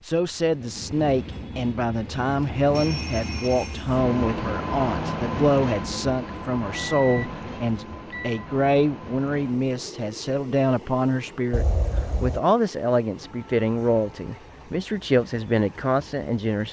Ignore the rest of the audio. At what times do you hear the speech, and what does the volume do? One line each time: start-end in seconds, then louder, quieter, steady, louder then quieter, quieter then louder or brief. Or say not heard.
0.0-16.6 steady.